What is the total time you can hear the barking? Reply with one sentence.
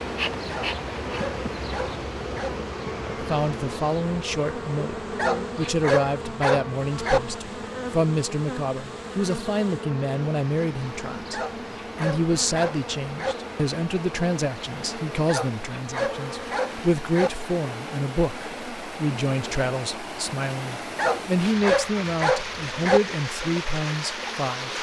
You can hear the barking for 10 seconds altogether.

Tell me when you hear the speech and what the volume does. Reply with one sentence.
The speech can be heard from 3.2 to 24.7 s, at a steady volume.